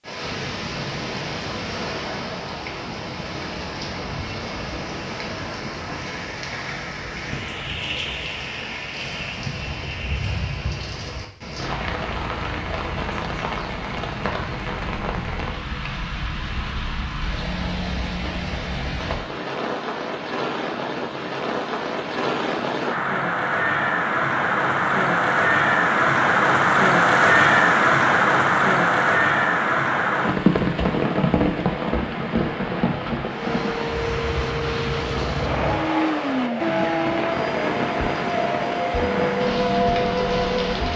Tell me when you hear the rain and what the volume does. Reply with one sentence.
You can hear the rain from 0.0 to 40.9 s, getting louder then quieter.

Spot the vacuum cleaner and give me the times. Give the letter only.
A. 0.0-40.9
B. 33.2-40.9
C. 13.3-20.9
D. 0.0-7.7
B.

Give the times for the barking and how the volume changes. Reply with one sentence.
The barking can't be heard in this clip.